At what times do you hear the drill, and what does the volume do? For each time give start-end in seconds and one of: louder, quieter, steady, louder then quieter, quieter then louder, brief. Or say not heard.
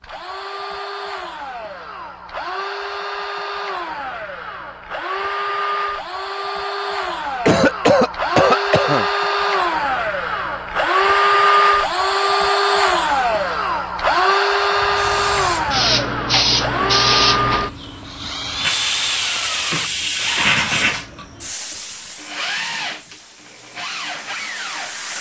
0.0-25.1 louder then quieter.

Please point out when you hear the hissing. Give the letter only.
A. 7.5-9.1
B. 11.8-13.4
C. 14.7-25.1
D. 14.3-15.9
C.